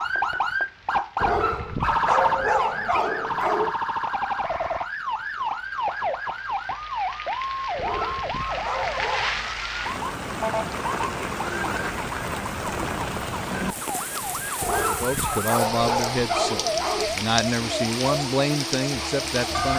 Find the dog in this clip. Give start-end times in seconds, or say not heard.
1.2-3.8, 7.8-9.5, 14.6-17.1.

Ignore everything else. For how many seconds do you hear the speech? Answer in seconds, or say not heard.
5 s.